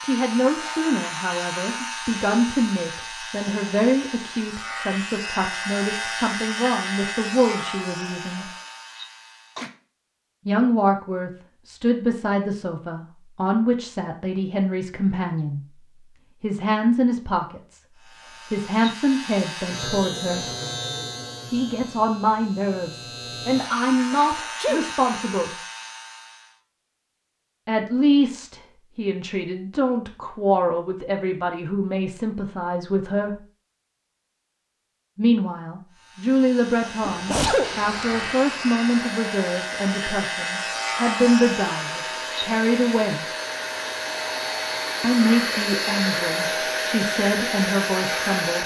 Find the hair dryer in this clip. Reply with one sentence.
The hair dryer can be heard from 37.6 to 48.6 s.